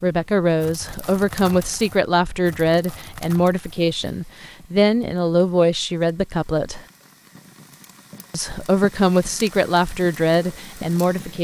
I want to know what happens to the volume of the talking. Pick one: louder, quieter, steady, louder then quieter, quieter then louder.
steady.